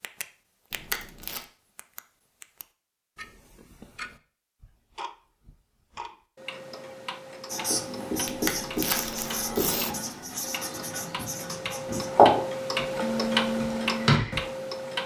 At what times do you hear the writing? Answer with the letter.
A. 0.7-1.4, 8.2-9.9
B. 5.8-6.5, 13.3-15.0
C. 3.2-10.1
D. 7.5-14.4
D.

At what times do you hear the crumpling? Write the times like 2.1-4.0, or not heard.
0.7-1.4, 8.2-9.9.